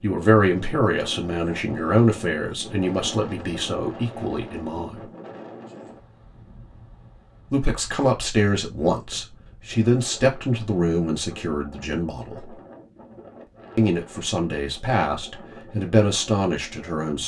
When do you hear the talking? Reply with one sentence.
The talking can be heard from 0.0 to 5.0 s, from 7.5 to 12.6 s and from 13.8 to 17.2 s.